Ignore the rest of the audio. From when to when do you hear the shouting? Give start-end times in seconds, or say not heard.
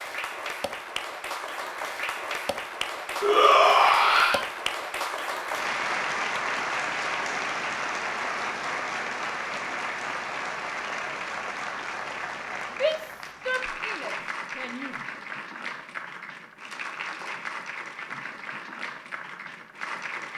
3.2-4.5, 12.7-14.9.